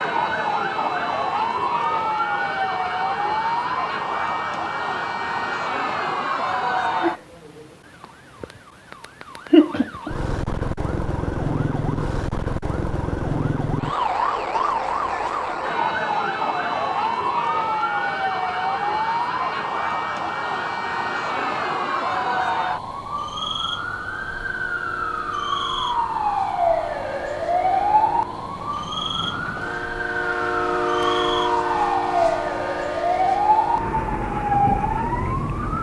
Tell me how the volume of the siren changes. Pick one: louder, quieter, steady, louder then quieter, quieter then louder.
steady.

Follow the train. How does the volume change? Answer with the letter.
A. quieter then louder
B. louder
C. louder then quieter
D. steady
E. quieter
B.